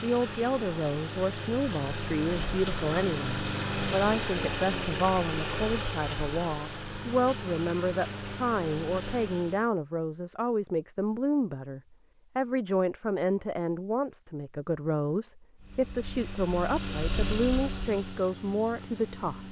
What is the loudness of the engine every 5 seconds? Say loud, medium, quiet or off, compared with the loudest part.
loud, loud, off, medium.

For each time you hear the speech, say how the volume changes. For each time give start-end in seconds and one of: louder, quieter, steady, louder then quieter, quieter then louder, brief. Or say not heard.
0.0-19.4 steady.